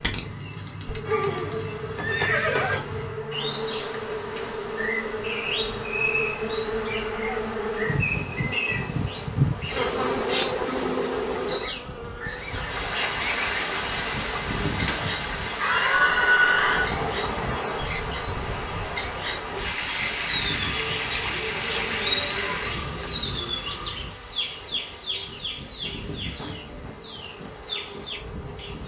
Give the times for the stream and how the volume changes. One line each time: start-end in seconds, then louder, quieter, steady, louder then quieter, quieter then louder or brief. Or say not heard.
12.3-28.8 quieter.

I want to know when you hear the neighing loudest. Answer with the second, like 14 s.
16 s.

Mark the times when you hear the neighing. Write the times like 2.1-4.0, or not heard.
1.1-2.8, 15.6-16.9.